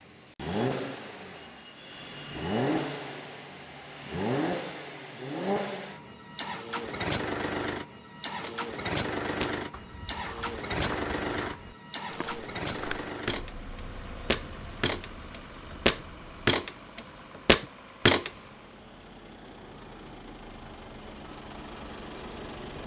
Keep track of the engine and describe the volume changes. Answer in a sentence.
The loudness of the engine goes down.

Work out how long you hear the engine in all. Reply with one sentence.
The engine can be heard for 23 seconds in total.